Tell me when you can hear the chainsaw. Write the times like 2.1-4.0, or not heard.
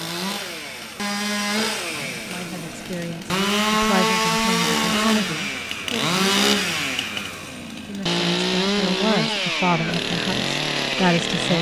0.0-11.5.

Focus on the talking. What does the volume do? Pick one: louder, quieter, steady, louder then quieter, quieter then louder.
louder.